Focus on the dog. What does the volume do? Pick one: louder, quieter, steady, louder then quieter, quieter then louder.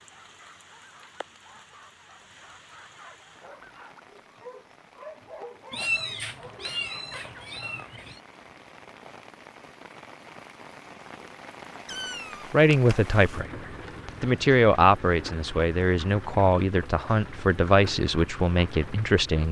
louder.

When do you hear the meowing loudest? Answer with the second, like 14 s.
6 s.